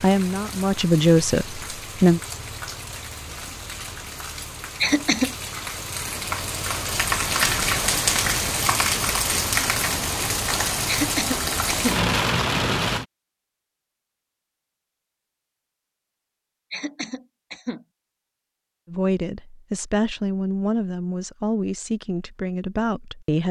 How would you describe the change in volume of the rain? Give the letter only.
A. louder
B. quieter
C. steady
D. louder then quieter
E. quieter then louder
A.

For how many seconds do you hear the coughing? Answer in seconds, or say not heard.
3 s.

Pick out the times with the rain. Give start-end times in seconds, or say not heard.
0.0-13.1.